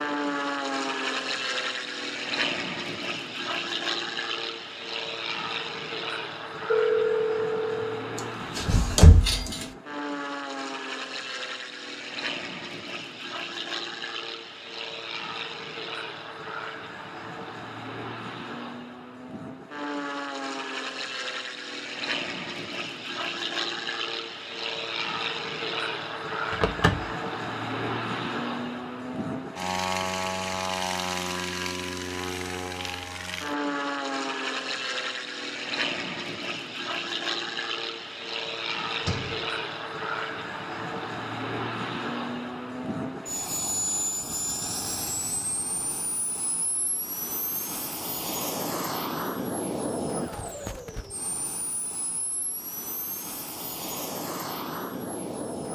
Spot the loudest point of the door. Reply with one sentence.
The volume of the door peaks at 9 seconds.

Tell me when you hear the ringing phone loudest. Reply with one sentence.
The loudest moment of the ringing phone is at 7 seconds.